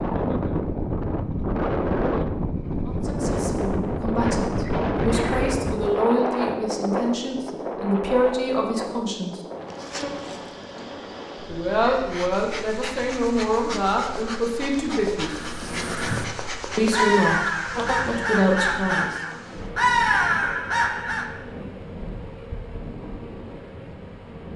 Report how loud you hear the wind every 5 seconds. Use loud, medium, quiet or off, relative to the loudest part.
loud, loud, quiet, quiet, quiet.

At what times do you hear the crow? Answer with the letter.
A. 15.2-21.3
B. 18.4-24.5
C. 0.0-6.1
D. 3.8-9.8
A.